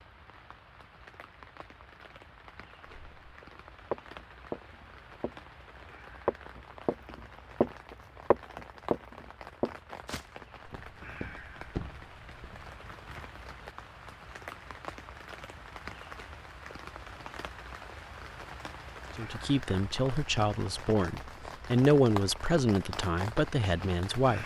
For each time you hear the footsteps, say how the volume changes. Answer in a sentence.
You can hear the footsteps briefly from 2.9 to 5.3 s; briefly from 6.2 to 7.7 s; and from 8.3 to 12.7 s, getting quieter then louder.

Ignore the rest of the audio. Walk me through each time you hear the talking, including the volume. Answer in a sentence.
You can hear the talking from 19.1 to 24.4 s, getting louder then quieter.